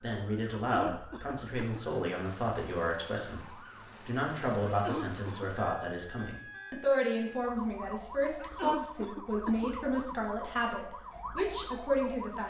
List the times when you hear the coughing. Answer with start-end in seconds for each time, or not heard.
0.5-1.9, 4.7-5.5, 8.4-10.2.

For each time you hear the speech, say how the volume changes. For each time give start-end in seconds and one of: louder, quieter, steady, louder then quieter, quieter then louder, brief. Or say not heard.
0.0-12.4 steady.